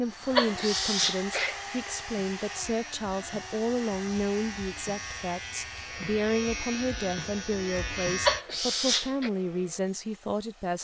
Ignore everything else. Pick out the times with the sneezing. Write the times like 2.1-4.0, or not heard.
0.3-1.6, 8.2-9.3.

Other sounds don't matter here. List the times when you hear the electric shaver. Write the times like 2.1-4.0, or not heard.
0.0-8.4.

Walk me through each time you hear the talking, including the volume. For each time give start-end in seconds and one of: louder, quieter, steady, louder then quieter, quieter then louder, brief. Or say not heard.
0.0-10.8 steady.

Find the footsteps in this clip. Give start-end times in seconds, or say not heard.
not heard.